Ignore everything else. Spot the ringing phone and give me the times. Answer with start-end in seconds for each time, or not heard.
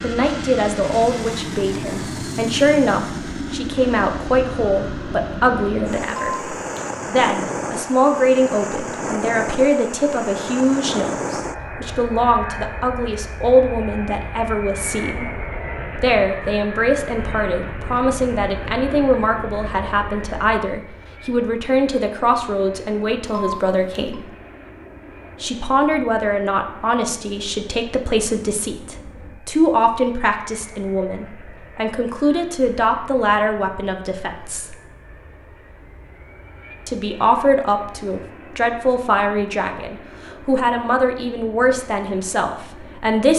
6.0-7.0, 23.2-24.1.